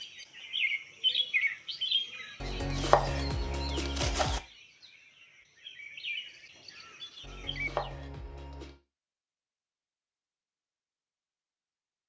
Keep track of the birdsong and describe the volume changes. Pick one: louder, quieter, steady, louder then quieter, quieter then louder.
quieter.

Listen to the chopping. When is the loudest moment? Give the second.
3 s.